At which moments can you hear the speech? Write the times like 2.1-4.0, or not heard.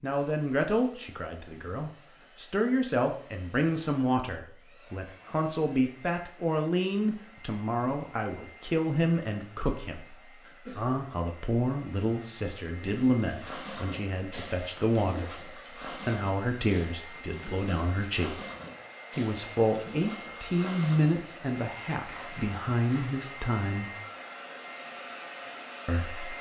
0.0-18.4, 19.1-23.9, 25.9-26.3.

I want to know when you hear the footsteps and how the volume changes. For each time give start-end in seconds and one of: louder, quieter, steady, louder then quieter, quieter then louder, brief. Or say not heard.
not heard.